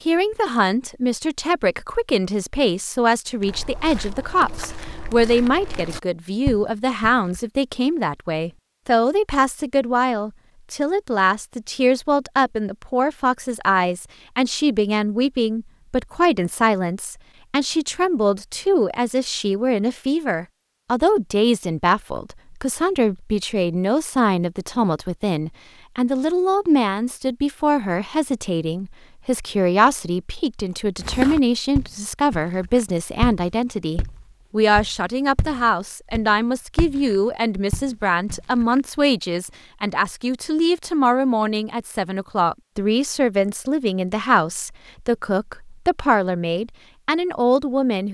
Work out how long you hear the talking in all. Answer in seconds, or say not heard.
48 s.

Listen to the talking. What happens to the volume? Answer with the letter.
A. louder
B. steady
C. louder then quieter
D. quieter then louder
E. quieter
B.